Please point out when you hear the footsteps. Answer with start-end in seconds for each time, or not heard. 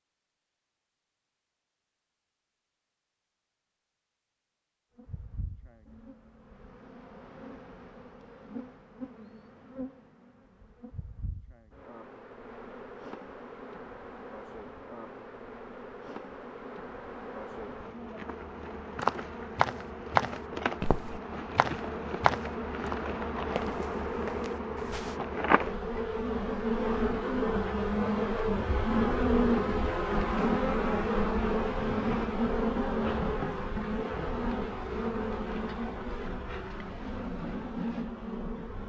18.9-25.2.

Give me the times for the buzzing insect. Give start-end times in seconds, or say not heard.
5.0-38.8.